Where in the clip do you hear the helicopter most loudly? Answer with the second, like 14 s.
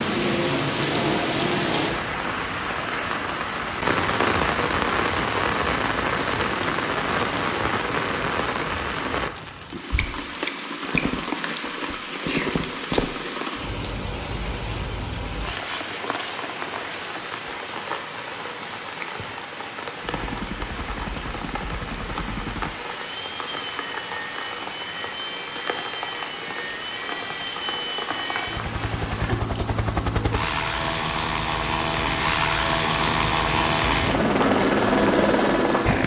35 s.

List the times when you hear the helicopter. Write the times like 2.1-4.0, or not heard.
20.0-36.0.